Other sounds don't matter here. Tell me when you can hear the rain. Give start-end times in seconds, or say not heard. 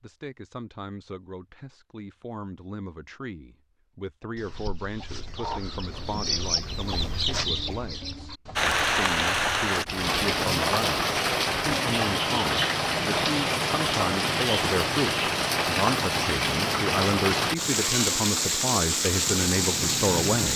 8.6-20.5.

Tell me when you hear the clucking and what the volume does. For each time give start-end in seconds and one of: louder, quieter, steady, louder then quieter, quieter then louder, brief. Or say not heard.
4.3-9.7 louder then quieter.